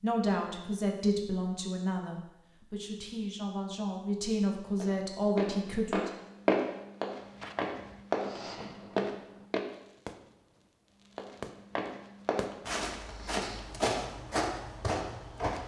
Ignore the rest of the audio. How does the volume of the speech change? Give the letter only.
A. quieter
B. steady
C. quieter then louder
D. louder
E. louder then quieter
C.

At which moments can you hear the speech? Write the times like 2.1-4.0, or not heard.
0.0-6.1.